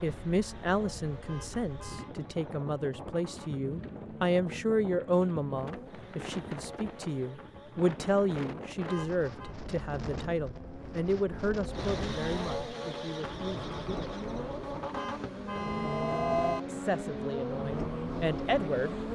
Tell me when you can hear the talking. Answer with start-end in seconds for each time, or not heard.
0.0-14.2, 16.6-18.9.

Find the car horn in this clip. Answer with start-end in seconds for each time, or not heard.
1.2-2.1, 8.8-9.6, 14.9-16.6.